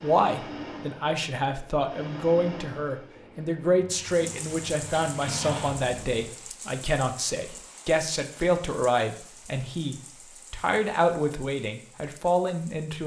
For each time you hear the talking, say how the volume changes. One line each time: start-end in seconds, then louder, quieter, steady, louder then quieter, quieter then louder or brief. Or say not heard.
0.0-13.0 steady.